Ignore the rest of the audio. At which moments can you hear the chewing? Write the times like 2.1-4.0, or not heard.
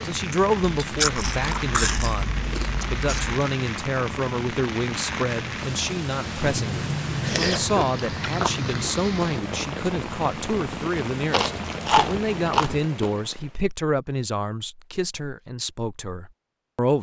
0.8-3.4, 6.4-8.9, 11.3-13.1.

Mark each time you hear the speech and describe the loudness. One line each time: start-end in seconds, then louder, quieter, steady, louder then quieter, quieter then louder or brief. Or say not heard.
0.0-16.9 steady.